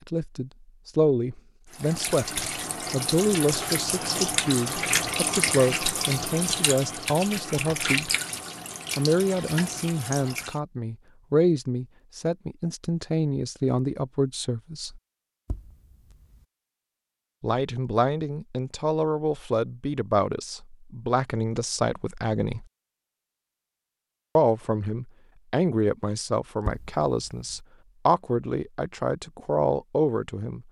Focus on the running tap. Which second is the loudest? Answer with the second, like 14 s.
5 s.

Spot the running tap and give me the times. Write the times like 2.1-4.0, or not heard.
1.7-10.6.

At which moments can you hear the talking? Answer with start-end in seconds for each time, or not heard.
0.1-8.1, 8.9-15.0, 17.4-22.6, 24.4-30.6.